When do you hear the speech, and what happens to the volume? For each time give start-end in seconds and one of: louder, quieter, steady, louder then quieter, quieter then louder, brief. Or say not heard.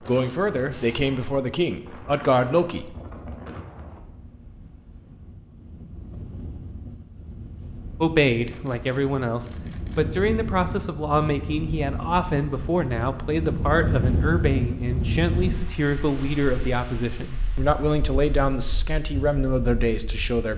0.0-2.9 brief
8.0-20.5 steady.